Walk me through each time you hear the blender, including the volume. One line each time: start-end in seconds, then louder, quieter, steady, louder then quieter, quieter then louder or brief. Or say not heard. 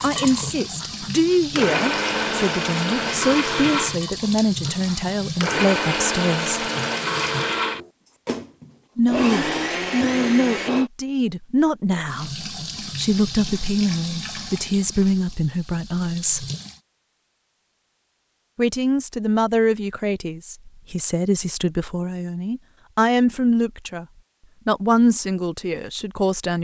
0.0-10.9 steady.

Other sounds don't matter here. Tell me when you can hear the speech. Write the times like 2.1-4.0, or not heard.
0.0-6.7, 8.9-16.4, 18.6-24.1, 24.6-26.5.